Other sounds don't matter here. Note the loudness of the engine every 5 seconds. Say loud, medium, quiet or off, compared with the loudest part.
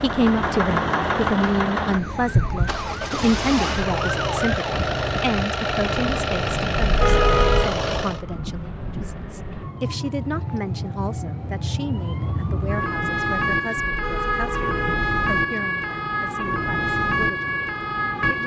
loud, loud, off, off.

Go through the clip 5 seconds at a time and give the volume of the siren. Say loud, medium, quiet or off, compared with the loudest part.
medium, medium, loud, loud.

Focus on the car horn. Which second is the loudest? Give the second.
7 s.